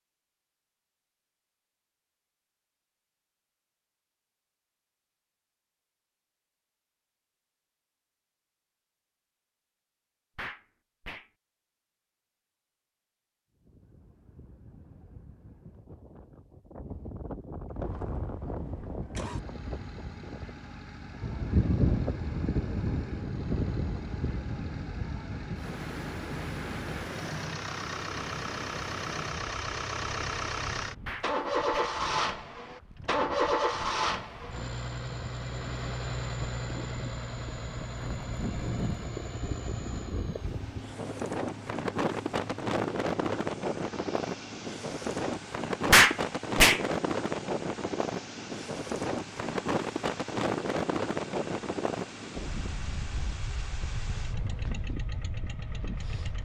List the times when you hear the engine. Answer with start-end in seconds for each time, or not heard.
17.7-56.3.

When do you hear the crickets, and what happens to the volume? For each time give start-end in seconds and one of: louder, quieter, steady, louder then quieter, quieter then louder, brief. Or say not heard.
not heard.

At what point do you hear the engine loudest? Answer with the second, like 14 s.
34 s.